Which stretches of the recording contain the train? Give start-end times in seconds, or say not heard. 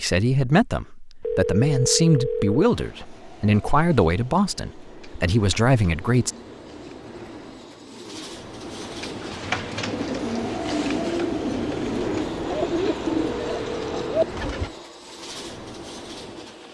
2.6-16.6.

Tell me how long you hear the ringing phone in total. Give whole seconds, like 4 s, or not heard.
3 s.